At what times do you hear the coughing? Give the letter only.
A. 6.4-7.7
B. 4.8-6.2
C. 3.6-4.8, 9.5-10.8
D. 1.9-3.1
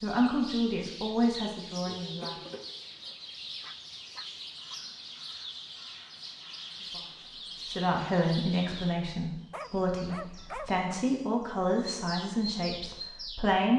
D.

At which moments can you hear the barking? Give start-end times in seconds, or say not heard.
3.6-4.8, 9.5-10.8.